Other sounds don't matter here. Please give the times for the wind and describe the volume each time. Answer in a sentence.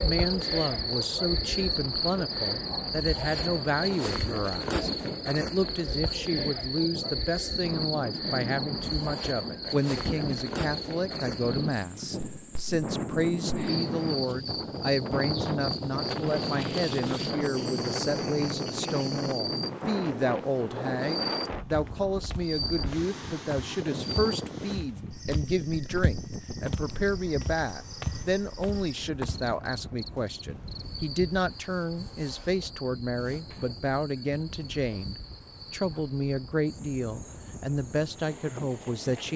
The wind can be heard from 0.0 to 39.3 s, getting louder then quieter.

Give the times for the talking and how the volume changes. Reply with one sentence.
The talking can be heard from 0.0 to 39.3 s, at a steady volume.